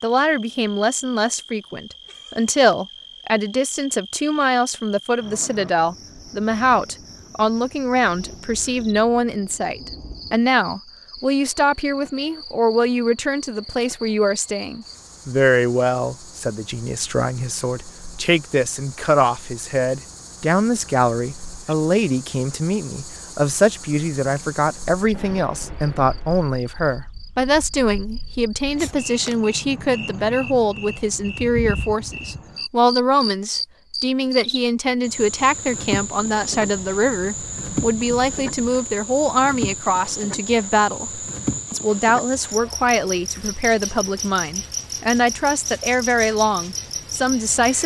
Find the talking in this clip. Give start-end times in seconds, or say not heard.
0.0-47.8.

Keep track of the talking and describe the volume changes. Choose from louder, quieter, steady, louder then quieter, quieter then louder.
steady.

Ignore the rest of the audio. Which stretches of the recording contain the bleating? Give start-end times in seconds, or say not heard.
not heard.